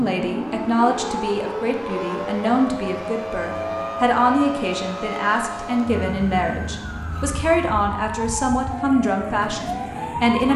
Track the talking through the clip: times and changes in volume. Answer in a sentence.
The talking can be heard from 0.0 to 10.5 s, at a steady volume.